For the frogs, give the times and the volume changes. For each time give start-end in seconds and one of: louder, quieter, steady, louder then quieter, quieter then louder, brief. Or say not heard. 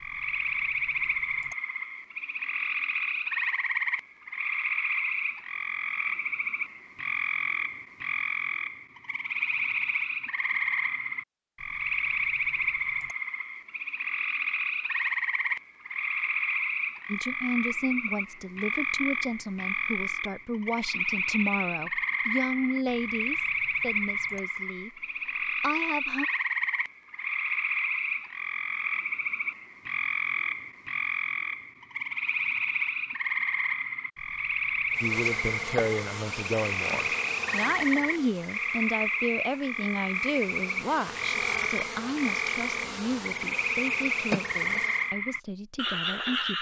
0.0-46.5 steady.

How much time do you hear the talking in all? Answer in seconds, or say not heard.
20 s.